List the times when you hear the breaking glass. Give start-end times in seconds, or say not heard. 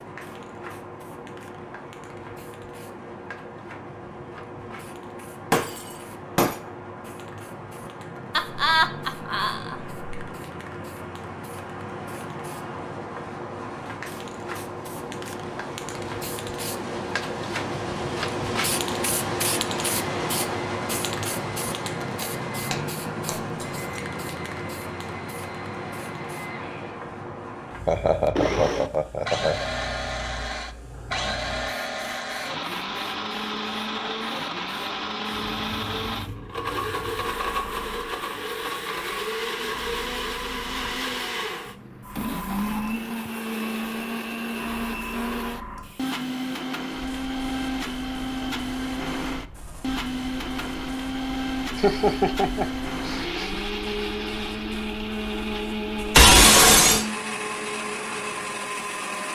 5.5-6.5, 22.2-24.0, 56.1-57.0.